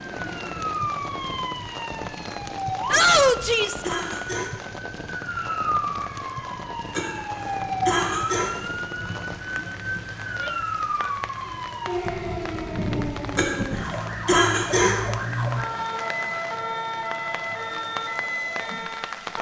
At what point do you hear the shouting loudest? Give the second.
3 s.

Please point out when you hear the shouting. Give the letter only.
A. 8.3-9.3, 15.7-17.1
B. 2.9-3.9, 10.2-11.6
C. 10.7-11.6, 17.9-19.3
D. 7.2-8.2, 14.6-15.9
B.